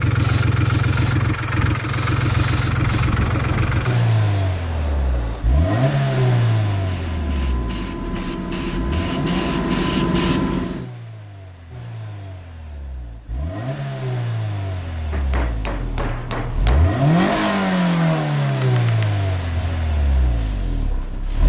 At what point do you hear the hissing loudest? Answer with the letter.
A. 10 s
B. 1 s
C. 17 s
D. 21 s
A.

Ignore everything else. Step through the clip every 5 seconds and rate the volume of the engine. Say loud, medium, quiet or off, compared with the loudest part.
loud, loud, medium, loud, medium.